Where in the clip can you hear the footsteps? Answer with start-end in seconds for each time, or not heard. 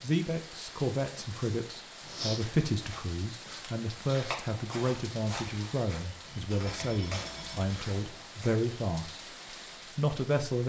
2.0-8.6.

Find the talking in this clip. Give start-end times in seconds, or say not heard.
0.0-10.6.